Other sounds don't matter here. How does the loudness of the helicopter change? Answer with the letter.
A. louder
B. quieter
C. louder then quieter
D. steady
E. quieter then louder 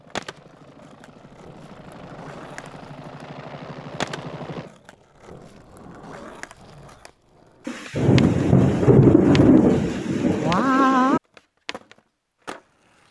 A.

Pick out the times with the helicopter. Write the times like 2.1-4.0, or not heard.
0.0-4.7.